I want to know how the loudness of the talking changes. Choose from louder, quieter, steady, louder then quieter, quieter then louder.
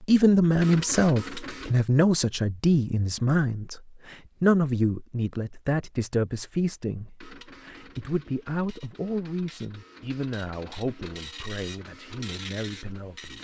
quieter.